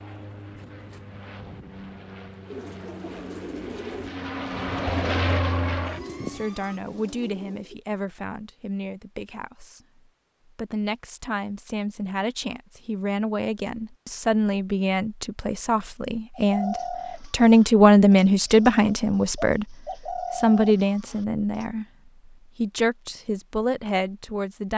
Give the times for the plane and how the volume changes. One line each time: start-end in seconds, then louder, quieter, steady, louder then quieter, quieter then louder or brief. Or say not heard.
0.0-6.8 louder.